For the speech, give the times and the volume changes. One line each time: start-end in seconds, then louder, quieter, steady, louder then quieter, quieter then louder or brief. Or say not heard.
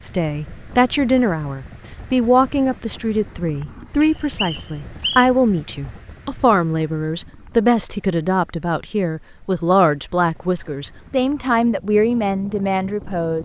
0.0-13.4 steady.